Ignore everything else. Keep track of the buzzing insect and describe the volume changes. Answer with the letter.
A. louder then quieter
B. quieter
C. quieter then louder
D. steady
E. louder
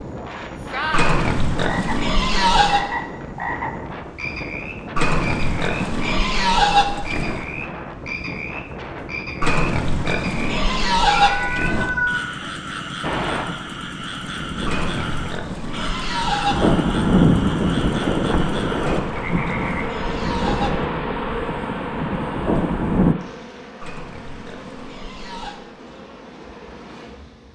B.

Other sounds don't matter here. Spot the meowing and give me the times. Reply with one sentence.
The meowing can be heard from 11.2 to 12.3 s.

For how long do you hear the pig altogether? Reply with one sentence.
You can hear the pig for 13 seconds altogether.